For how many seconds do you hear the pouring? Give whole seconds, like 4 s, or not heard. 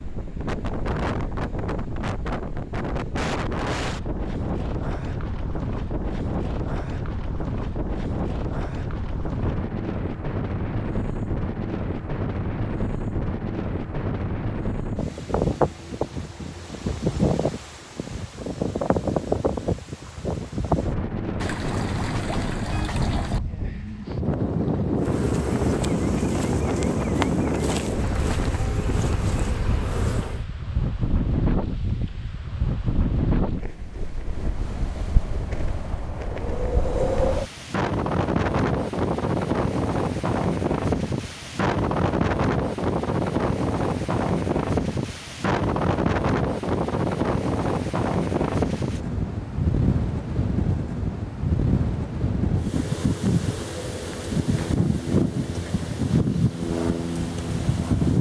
2 s.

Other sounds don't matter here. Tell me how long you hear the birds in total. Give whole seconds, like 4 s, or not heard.
not heard.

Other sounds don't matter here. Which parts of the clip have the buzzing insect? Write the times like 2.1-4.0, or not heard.
24.9-30.4.